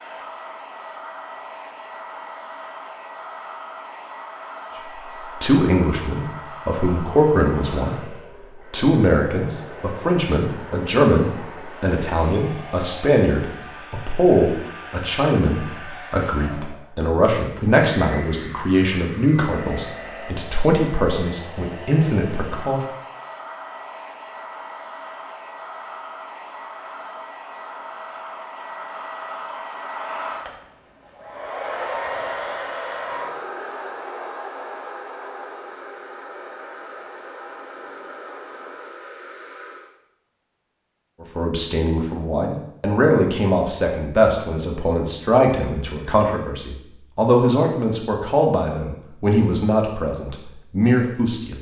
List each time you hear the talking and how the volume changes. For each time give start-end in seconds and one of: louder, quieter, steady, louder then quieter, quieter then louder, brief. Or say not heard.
5.3-22.8 steady
41.2-51.5 steady.